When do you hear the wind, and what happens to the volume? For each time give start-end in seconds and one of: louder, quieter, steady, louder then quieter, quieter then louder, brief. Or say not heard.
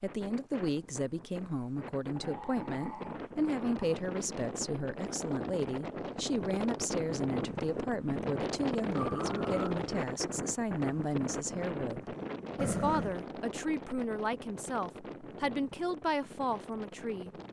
0.0-17.4 louder then quieter.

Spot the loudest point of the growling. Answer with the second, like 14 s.
13 s.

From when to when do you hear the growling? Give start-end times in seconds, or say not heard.
2.1-4.0, 8.9-9.8, 12.6-13.2.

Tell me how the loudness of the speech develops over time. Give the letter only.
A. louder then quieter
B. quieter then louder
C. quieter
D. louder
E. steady
E.